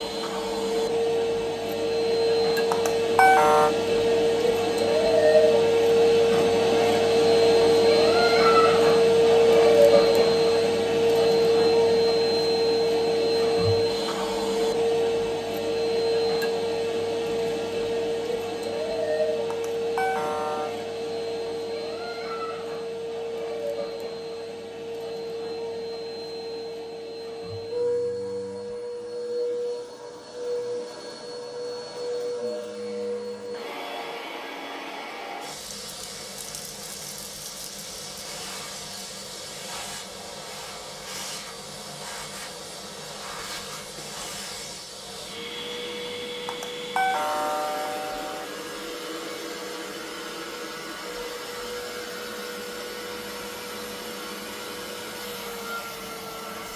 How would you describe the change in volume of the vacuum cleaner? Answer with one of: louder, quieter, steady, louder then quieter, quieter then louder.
quieter.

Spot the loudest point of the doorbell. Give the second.
3 s.